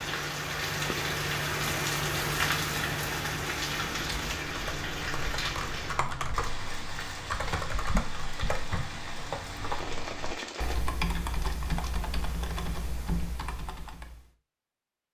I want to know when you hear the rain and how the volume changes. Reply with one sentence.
You can hear the rain from 0.0 to 10.8 s, getting quieter.